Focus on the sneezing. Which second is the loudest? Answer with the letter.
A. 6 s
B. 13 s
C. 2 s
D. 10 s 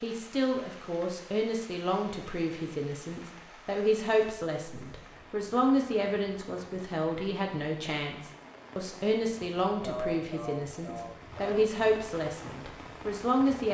D.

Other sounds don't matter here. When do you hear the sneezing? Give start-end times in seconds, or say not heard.
9.8-11.7.